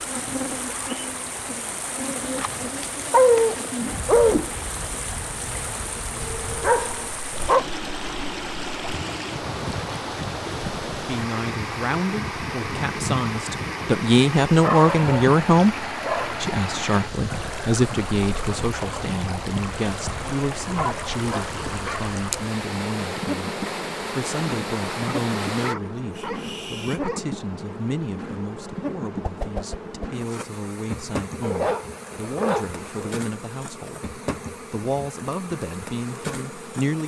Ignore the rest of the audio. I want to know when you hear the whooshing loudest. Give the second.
4 s.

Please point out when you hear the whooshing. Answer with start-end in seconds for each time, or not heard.
3.8-4.6, 29.2-30.2.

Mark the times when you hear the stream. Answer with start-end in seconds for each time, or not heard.
0.0-25.8.